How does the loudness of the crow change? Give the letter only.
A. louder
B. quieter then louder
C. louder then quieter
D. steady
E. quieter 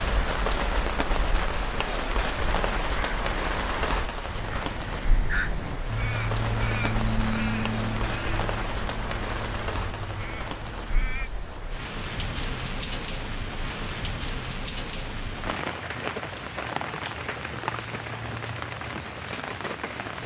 C.